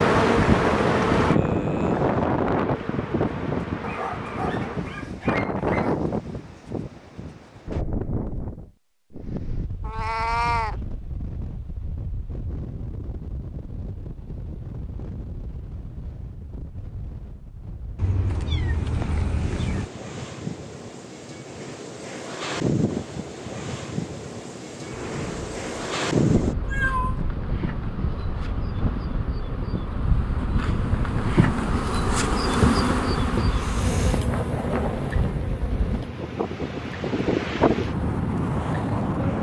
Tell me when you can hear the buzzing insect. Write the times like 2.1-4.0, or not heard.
0.0-5.0, 24.8-39.3.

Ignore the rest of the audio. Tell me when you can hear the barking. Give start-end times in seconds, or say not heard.
3.8-6.0.